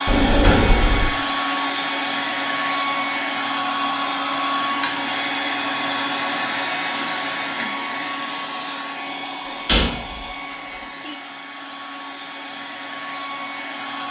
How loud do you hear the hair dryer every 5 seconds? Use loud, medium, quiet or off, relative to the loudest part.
loud, loud, medium.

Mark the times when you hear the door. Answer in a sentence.
You can hear the door from 0.1 to 1.1 s and from 9.7 to 10.2 s.